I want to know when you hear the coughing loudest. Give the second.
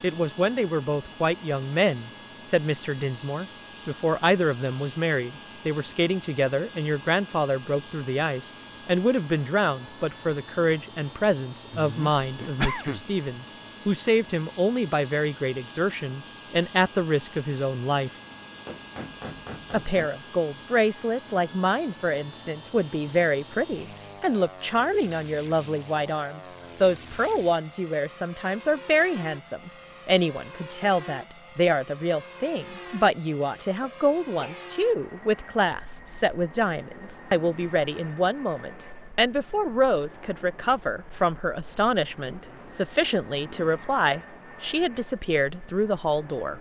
13 s.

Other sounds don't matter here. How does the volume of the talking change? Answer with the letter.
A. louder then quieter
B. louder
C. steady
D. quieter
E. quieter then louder
C.